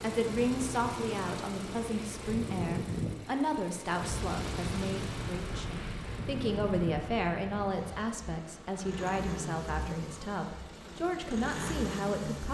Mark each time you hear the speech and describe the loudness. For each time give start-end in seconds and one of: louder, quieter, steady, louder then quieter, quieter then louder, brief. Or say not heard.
0.0-12.4 steady.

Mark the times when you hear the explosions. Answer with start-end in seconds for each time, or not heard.
4.0-7.9.